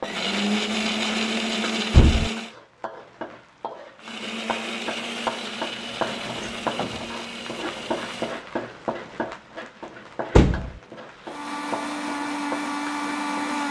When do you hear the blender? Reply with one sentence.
The blender can be heard from 0.0 to 2.5 s, from 4.0 to 8.4 s and from 11.2 to 13.6 s.